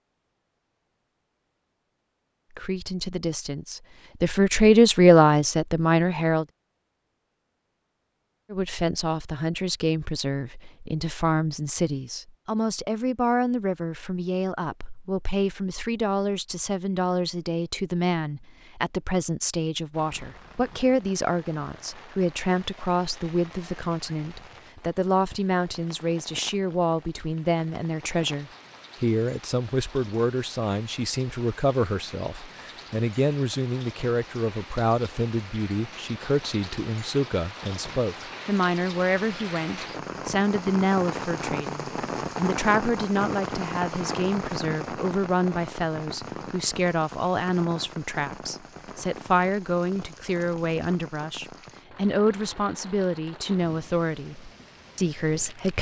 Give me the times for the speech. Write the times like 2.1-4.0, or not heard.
2.5-6.5, 8.5-55.7.